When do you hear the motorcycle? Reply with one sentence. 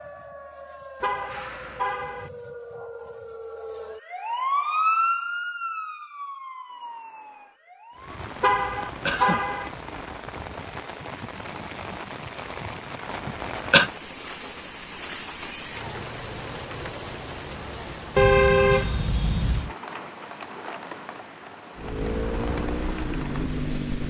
The motorcycle can be heard from 21.8 to 24.0 s.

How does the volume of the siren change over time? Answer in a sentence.
The volume of the siren goes up, then down.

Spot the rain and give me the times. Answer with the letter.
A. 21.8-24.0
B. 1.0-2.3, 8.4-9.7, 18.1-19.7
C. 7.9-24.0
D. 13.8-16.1
C.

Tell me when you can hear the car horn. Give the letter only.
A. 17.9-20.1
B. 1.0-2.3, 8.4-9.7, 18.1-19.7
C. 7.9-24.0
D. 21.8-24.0
B.